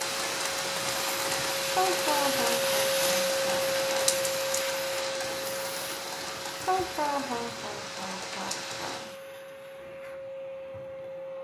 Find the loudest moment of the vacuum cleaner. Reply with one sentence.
The loudest moment of the vacuum cleaner is at 3 seconds.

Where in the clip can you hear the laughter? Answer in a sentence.
The laughter can be heard from 1.7 to 4.1 s and from 6.6 to 9.2 s.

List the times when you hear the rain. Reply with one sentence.
You can hear the rain from 0.0 to 9.2 s.